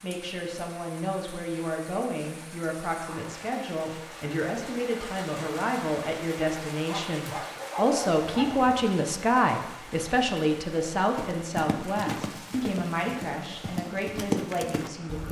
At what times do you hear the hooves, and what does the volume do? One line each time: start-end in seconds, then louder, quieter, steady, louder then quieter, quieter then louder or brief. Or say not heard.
11.2-15.2 quieter then louder.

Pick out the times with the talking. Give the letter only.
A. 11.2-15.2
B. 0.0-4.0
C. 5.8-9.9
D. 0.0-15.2
D.